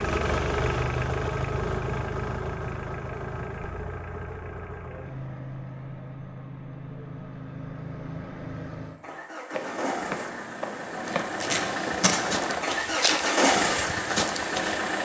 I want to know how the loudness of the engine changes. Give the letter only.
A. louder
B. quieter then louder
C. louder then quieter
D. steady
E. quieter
B.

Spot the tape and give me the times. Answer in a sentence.
You can hear the tape from 11.1 to 12.2 s.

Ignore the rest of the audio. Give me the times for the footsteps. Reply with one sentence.
The footsteps can be heard from 9.5 to 14.8 s.